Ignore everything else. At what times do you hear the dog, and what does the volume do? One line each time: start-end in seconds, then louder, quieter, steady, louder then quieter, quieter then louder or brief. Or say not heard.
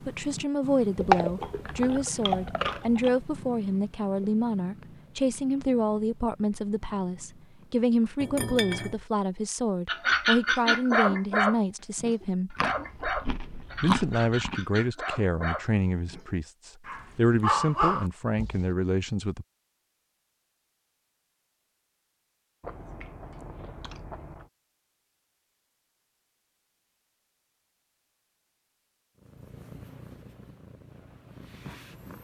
9.8-18.6 quieter then louder.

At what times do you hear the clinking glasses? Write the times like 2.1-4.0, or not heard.
8.2-9.0.